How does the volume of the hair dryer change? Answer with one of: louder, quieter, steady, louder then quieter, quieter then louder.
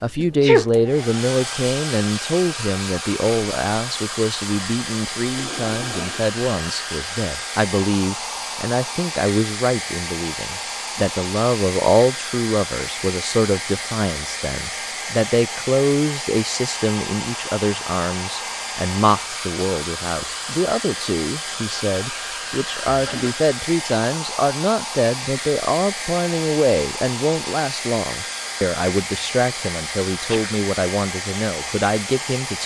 steady.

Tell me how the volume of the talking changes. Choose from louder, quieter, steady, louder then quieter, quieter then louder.
steady.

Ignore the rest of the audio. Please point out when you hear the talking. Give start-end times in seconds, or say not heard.
0.0-32.6.